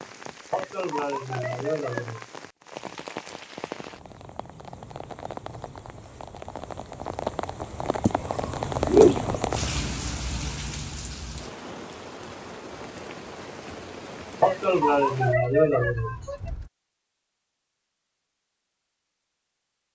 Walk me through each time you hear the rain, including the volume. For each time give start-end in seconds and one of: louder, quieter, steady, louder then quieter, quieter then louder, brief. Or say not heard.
0.0-16.7 louder then quieter.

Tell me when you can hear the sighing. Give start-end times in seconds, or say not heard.
0.5-2.2, 14.4-16.5.